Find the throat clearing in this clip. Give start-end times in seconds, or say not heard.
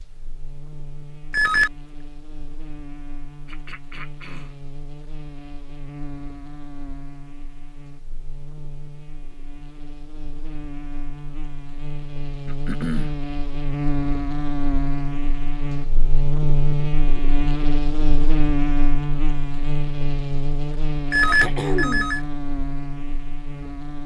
3.5-4.5, 12.4-13.2, 21.2-22.1.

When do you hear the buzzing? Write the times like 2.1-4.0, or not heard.
0.0-24.0.